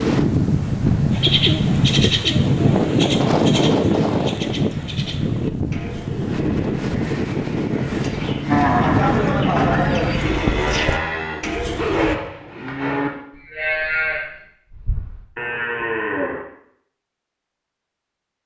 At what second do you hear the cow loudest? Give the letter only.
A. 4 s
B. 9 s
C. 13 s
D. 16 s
B.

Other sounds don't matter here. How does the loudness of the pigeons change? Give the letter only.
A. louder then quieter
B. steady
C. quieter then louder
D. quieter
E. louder
C.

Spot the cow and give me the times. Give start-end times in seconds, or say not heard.
8.4-16.4.